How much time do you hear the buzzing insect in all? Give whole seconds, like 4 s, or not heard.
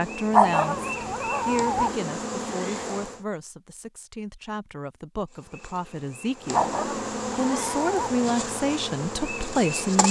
8 s.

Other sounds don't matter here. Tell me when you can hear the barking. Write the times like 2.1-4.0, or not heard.
0.3-1.9, 6.5-8.2.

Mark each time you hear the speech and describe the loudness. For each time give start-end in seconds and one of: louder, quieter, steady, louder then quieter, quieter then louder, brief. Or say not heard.
0.0-10.0 quieter then louder.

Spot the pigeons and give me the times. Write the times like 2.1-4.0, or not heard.
not heard.